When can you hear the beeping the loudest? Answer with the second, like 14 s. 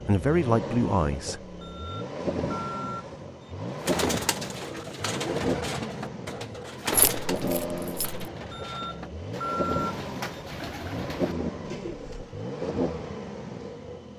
10 s.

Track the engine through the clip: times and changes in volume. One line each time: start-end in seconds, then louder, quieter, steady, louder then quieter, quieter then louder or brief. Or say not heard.
0.0-14.1 steady.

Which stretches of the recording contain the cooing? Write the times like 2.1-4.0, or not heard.
3.8-12.4.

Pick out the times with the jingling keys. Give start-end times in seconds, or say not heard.
6.9-8.2.